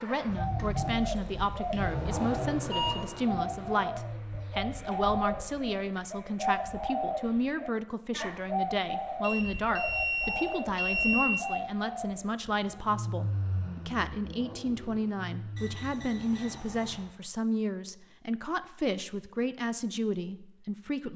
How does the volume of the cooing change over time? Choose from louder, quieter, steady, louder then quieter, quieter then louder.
steady.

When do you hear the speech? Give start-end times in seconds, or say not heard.
0.0-21.1.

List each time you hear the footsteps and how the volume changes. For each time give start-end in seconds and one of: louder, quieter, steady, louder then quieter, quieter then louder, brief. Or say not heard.
not heard.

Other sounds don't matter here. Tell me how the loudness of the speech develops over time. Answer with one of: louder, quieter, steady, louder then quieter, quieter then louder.
steady.